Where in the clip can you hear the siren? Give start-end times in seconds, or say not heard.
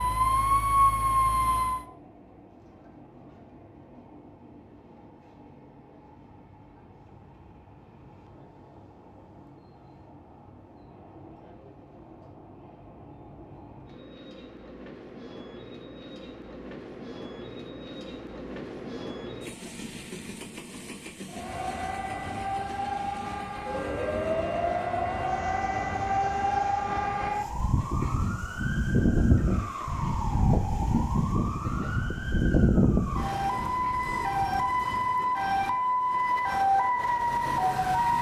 0.0-1.9, 21.2-38.1.